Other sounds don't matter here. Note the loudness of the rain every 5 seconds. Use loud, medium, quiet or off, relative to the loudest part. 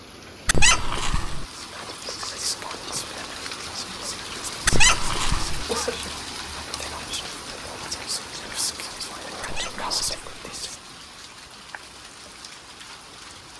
loud, loud, medium.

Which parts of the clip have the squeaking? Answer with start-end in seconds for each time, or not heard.
0.5-1.4, 4.7-5.7, 9.4-10.3.